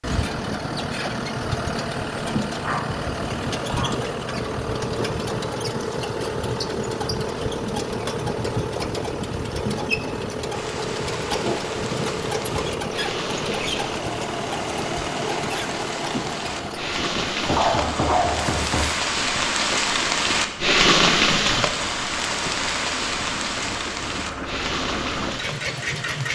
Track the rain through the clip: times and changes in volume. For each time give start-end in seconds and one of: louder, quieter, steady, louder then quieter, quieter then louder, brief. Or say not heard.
10.5-26.3 louder then quieter.